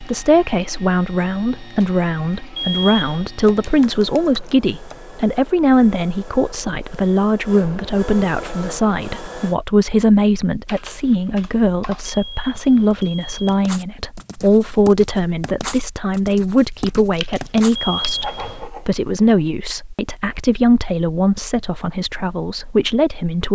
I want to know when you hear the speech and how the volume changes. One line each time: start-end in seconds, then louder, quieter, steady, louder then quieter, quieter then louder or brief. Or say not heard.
0.0-23.5 steady.